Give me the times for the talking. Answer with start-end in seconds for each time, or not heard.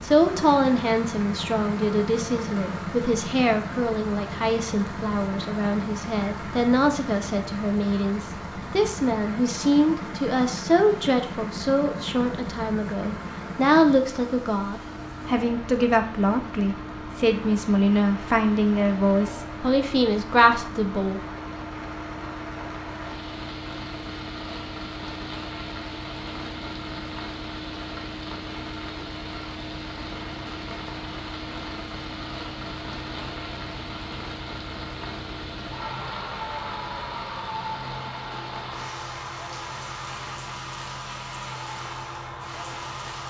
0.0-21.2.